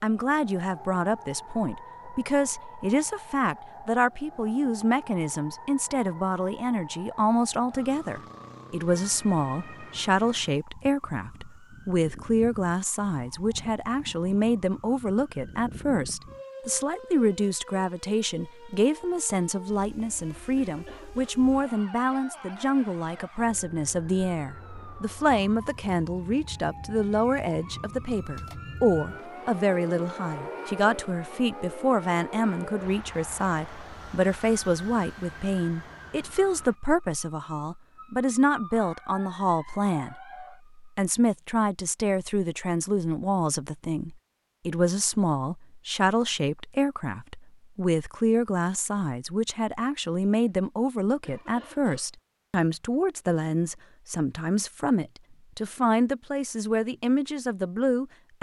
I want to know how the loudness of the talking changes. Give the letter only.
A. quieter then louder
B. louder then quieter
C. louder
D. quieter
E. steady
E.